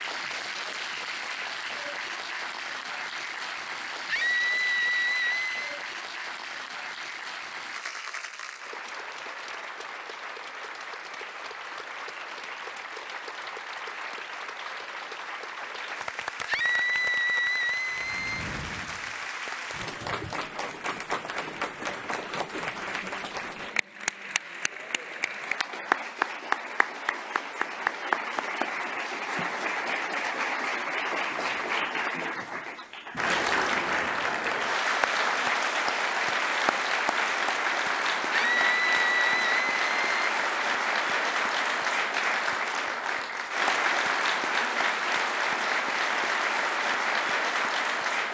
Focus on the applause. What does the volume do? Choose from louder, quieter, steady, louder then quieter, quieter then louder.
louder.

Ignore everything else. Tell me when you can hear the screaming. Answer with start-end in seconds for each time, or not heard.
4.0-5.7, 16.4-18.4, 38.3-40.1.